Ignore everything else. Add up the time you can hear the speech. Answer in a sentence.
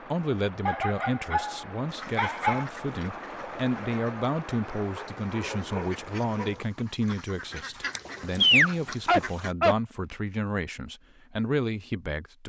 You can hear the speech for 12 seconds altogether.